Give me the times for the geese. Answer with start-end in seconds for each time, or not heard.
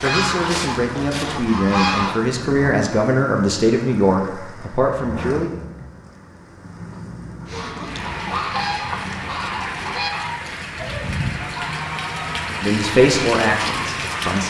0.0-2.2, 7.5-14.4.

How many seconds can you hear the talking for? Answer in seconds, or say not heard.
7 s.